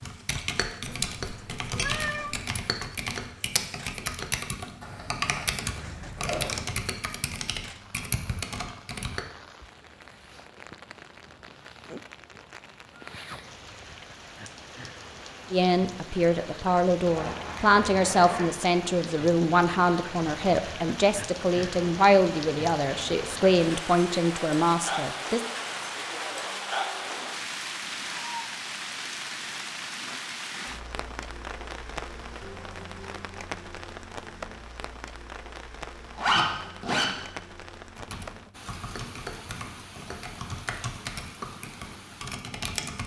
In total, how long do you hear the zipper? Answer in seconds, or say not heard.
4 s.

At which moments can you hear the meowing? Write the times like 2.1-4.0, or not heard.
0.8-2.4.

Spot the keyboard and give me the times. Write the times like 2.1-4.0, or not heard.
0.0-9.2, 38.0-43.0.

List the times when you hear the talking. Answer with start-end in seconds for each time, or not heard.
15.5-25.4.